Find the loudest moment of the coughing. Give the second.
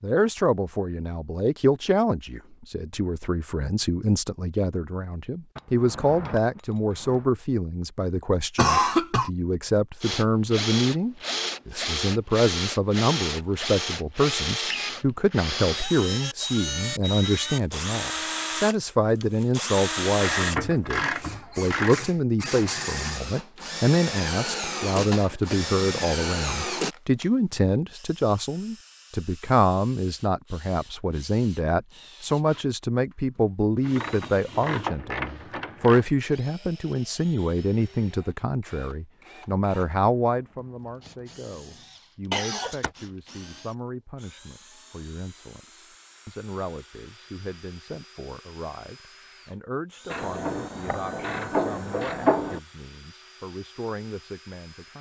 9 s.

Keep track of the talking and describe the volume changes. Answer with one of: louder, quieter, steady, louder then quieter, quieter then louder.
quieter.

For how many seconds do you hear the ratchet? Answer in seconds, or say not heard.
8 s.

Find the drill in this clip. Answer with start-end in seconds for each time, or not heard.
10.0-54.9.